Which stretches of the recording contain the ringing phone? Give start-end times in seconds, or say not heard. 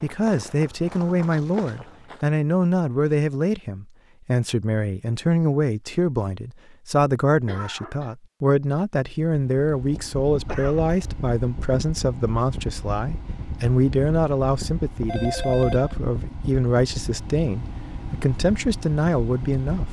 15.1-16.0.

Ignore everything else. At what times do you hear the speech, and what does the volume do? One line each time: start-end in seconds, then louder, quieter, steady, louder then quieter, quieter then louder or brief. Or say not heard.
0.0-19.8 steady.